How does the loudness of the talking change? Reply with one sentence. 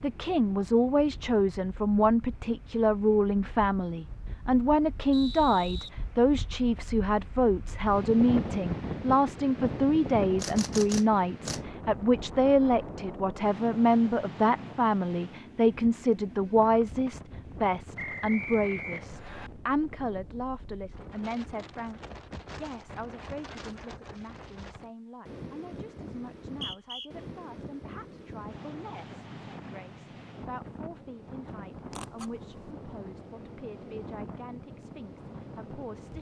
The volume of the talking goes down.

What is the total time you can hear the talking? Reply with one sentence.
You can hear the talking for 36 seconds altogether.